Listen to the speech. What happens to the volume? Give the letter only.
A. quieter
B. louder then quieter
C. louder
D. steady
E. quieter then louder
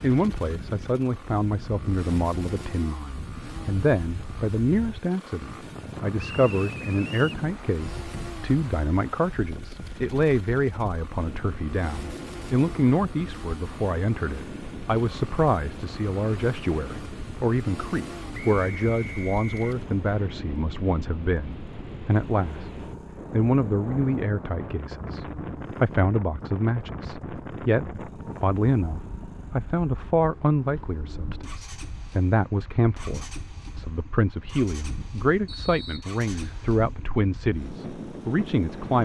D.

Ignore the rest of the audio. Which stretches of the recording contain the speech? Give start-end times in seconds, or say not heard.
0.0-39.0.